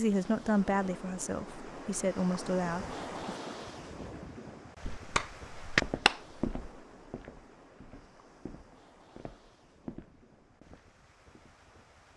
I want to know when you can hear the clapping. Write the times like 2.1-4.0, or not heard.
4.8-6.4.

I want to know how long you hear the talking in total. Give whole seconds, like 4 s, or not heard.
3 s.